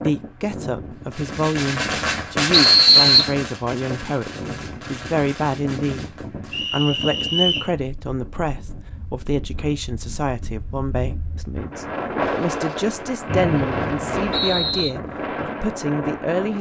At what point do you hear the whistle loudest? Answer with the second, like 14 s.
3 s.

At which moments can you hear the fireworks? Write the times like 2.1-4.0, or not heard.
1.1-6.7.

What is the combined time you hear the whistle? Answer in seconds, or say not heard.
4 s.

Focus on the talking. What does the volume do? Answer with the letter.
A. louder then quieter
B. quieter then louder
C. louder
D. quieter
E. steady
E.